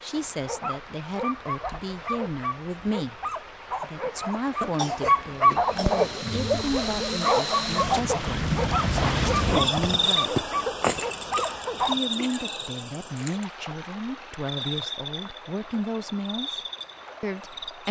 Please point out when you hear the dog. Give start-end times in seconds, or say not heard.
0.1-11.9.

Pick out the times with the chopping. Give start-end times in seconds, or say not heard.
not heard.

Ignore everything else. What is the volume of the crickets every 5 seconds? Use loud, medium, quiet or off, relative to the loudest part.
off, loud, loud, medium.